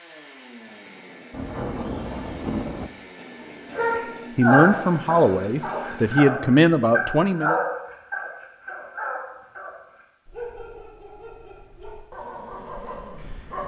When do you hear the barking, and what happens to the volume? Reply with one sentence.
You can hear the barking from 3.7 to 13.6 s, getting quieter.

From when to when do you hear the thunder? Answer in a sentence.
The thunder can be heard from 1.3 to 2.9 s.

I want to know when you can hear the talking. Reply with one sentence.
You can hear the talking from 4.3 to 7.5 s.